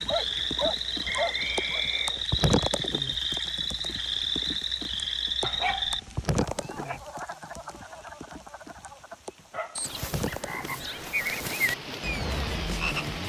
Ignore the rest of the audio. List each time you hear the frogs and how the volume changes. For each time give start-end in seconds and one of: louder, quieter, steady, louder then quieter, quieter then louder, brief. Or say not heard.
0.0-13.2 quieter then louder.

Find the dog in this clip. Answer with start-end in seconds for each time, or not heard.
0.1-1.9, 5.4-7.0, 9.5-9.9.